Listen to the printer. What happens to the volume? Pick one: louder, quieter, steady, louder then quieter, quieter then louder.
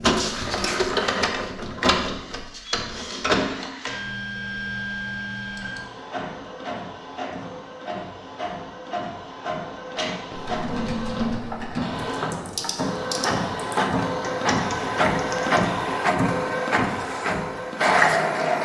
quieter then louder.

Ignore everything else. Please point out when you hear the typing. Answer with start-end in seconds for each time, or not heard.
10.3-15.7.